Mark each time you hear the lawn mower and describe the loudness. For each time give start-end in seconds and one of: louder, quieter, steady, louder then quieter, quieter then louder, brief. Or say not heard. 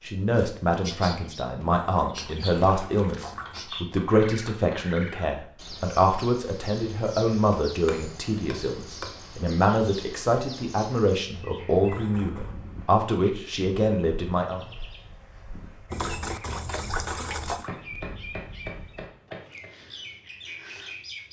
not heard.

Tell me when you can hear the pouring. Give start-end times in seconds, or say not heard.
1.6-3.6, 11.8-12.6, 15.9-17.7.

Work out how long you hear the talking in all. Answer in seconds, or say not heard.
15 s.